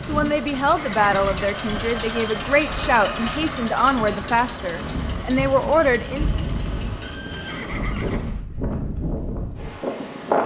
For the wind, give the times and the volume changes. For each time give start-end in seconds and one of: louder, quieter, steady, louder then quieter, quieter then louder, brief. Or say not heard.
0.0-10.4 louder.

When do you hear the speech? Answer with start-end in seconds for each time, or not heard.
0.1-6.2.